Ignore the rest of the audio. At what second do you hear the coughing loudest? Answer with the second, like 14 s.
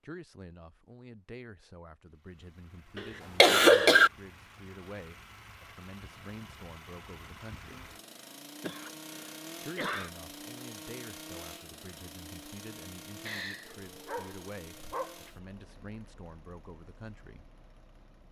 4 s.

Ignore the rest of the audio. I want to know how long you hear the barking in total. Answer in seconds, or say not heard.
2 s.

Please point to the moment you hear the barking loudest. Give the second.
15 s.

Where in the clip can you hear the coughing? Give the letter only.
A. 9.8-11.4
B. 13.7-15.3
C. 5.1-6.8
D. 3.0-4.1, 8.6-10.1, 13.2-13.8
D.